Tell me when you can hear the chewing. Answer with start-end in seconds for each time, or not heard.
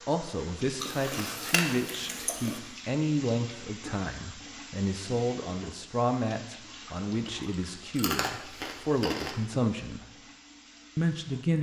0.8-2.6, 7.2-9.4.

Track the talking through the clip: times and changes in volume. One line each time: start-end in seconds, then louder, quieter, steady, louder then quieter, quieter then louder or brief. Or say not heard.
0.1-10.1 steady
10.9-11.5 brief.